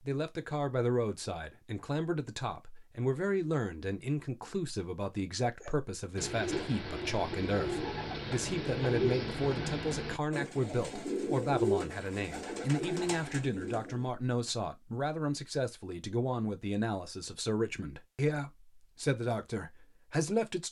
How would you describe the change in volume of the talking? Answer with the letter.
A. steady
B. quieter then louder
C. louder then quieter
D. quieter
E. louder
A.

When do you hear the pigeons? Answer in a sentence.
You can hear the pigeons from 5.6 to 14.1 s.